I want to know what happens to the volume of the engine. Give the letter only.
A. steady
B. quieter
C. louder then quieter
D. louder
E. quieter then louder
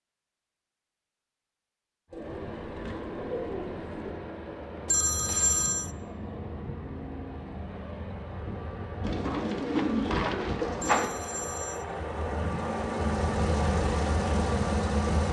D.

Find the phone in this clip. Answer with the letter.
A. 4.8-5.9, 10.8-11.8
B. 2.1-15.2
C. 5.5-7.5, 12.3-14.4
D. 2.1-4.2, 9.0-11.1
A.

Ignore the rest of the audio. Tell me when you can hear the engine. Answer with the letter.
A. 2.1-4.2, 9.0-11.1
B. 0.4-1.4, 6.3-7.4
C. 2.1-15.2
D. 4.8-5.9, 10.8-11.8
C.